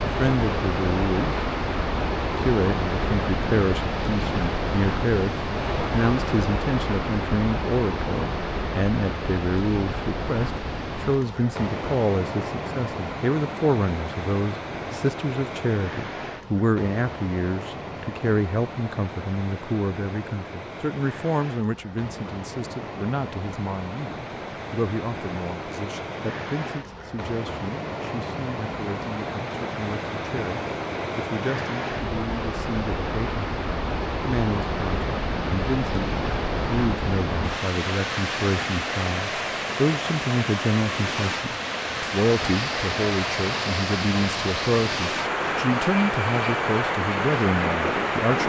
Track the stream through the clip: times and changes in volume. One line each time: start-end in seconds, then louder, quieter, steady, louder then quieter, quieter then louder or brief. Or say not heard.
0.0-48.4 quieter then louder.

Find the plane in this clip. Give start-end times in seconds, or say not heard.
42.2-48.4.